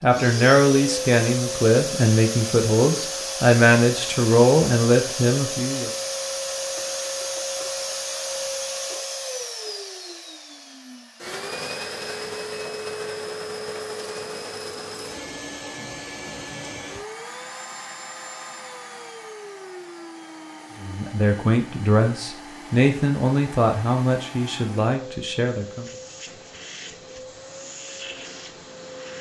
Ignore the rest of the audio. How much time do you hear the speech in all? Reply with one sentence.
The speech can be heard for 11 seconds in total.